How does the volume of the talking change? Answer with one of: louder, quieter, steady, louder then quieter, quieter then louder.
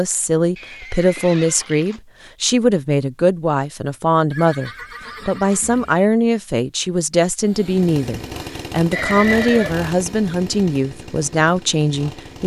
steady.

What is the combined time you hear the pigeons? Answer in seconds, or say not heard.
not heard.